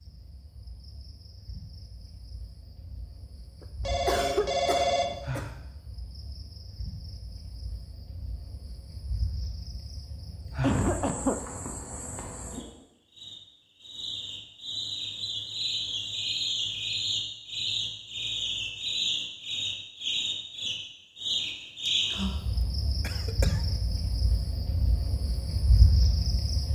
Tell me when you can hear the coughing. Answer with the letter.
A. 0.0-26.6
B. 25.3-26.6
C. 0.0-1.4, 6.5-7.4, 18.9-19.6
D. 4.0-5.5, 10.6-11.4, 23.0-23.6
D.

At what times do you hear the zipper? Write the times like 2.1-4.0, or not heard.
not heard.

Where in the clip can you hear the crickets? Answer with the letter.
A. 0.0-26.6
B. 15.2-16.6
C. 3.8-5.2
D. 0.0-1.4
A.